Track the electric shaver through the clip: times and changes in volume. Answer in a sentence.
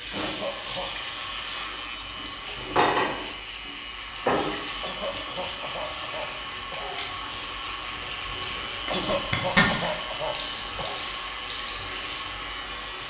You can hear the electric shaver from 0.0 to 13.0 s, at a steady volume.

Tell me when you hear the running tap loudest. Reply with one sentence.
The loudest moment of the running tap is at 3 seconds.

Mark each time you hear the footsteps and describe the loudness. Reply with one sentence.
You can't hear the footsteps here.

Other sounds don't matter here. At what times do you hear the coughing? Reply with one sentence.
You can hear the coughing from 0.2 to 0.9 s, from 4.8 to 7.2 s and from 8.9 to 11.0 s.